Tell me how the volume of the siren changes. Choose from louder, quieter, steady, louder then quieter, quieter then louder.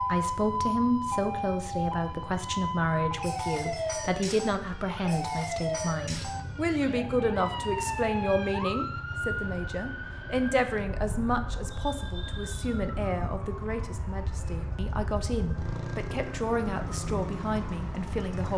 quieter.